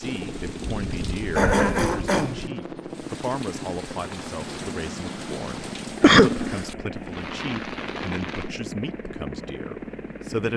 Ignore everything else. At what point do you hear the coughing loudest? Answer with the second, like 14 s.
6 s.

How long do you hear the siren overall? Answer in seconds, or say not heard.
not heard.